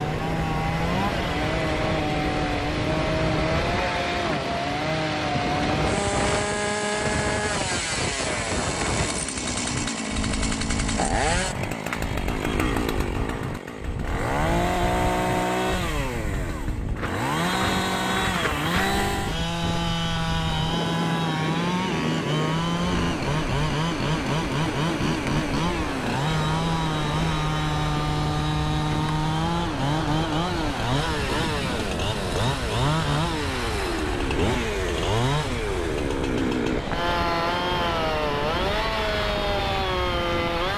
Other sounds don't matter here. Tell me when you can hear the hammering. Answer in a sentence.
You can't hear the hammering here.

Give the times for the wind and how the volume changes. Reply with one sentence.
You can hear the wind from 0.0 to 40.7 s, at a steady volume.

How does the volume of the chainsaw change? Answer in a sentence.
The volume of the chainsaw stays about the same.